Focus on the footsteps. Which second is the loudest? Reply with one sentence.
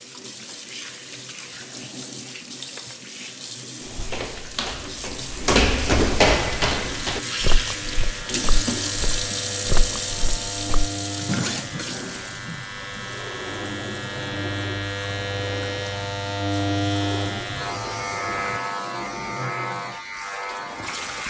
The volume of the footsteps peaks at 6 seconds.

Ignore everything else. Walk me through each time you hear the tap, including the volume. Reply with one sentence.
The tap can be heard from 0.0 to 21.2 s, getting louder then quieter.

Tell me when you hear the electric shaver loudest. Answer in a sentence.
The loudest moment of the electric shaver is at 17 seconds.